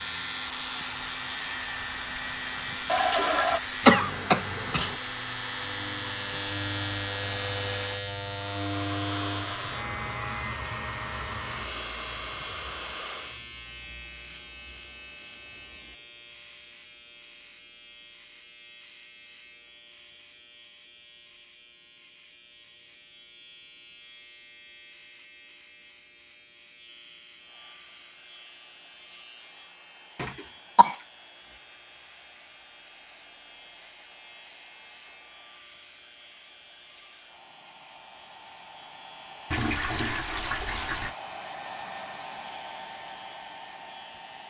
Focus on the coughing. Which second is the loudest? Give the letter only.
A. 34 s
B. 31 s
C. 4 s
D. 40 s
C.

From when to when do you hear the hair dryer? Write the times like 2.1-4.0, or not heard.
0.0-13.4, 27.4-44.4.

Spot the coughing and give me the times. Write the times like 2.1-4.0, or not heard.
3.9-5.0, 30.2-30.9.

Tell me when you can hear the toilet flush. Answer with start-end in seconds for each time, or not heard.
2.9-3.6, 39.5-41.1.